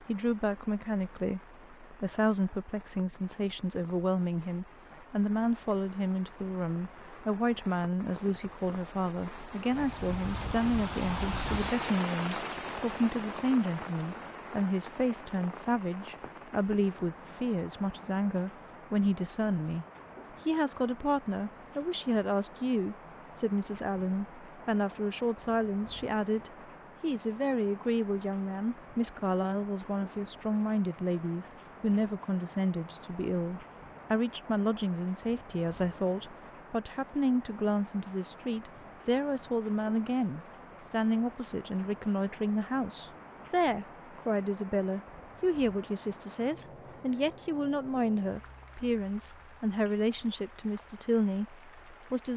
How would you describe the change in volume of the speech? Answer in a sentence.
The loudness of the speech stays about the same.